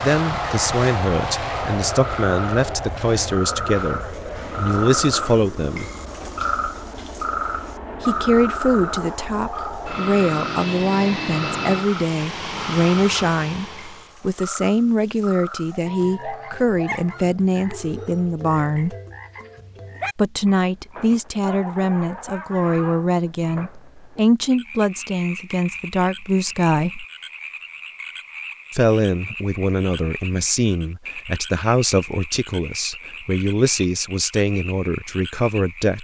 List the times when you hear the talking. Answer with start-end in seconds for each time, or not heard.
0.0-5.9, 8.0-18.9, 20.1-27.1, 28.7-35.9.